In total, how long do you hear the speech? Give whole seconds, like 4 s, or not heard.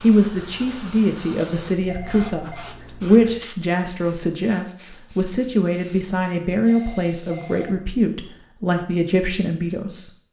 10 s.